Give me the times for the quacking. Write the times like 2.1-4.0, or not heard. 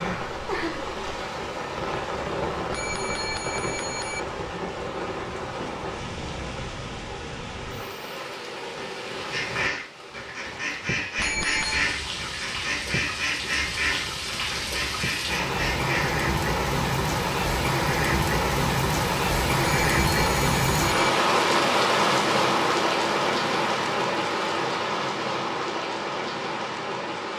9.3-16.1.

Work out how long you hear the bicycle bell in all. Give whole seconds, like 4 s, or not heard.
4 s.